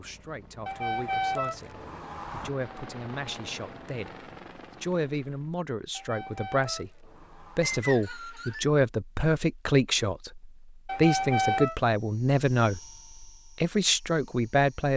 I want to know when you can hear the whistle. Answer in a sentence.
You can hear the whistle from 7.6 to 8.7 s.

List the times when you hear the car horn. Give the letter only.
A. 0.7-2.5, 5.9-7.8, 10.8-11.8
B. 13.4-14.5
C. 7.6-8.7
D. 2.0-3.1
A.